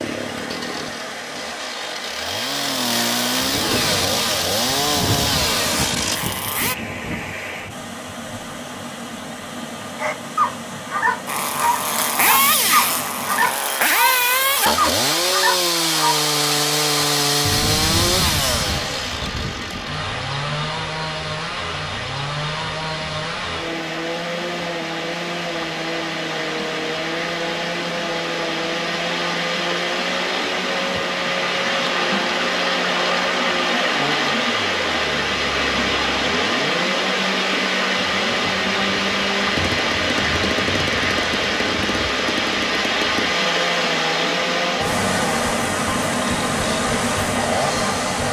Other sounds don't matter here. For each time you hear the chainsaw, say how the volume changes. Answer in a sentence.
The chainsaw can be heard from 0.0 to 6.8 s, getting louder; and from 11.2 to 48.2 s, getting quieter.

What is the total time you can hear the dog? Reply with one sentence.
The dog can be heard for 6 seconds in total.